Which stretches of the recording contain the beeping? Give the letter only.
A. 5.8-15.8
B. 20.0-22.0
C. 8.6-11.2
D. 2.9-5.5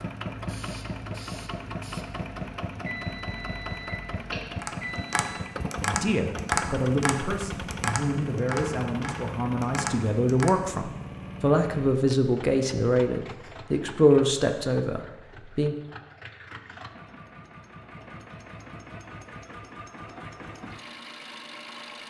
D.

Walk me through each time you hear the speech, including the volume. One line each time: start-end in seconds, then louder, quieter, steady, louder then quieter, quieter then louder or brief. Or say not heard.
5.8-15.8 louder.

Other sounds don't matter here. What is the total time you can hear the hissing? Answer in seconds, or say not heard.
2 s.